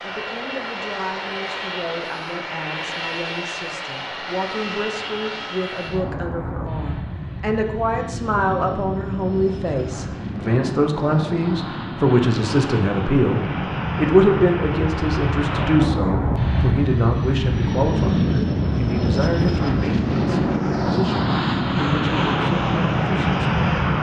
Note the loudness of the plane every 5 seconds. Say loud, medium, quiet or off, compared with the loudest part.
medium, medium, medium, loud, loud.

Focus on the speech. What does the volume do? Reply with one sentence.
The loudness of the speech goes up, then down.